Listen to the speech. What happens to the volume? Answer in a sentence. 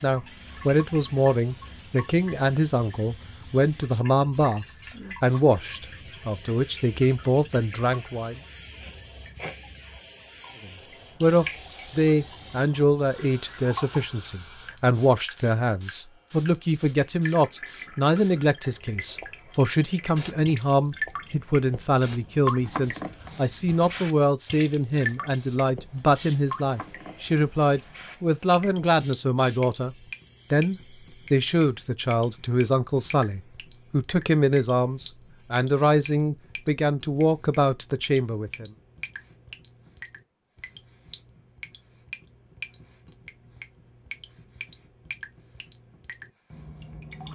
The loudness of the speech stays about the same.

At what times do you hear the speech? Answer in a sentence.
The speech can be heard from 0.0 to 8.4 s and from 10.7 to 38.7 s.